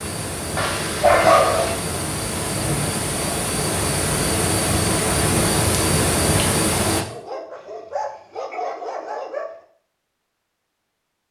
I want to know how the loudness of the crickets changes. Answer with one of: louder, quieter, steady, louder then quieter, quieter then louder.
louder.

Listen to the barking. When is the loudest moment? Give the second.
1 s.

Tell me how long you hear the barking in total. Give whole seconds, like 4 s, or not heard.
4 s.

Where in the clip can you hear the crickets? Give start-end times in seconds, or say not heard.
0.0-7.0.